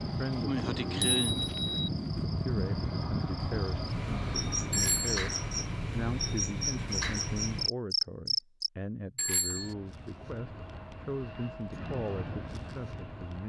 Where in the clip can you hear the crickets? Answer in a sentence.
You can hear the crickets from 0.0 to 8.7 s.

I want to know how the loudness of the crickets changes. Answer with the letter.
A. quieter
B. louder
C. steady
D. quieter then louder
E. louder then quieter
C.